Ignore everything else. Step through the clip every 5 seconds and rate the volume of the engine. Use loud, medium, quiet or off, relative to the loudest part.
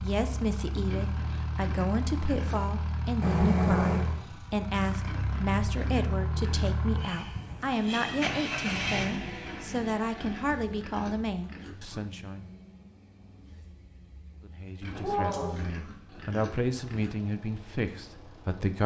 loud, loud, quiet, quiet.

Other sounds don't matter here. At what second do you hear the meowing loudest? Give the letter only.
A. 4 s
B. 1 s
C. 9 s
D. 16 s
A.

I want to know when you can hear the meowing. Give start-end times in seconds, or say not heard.
3.2-4.0, 7.2-9.1, 14.9-15.7.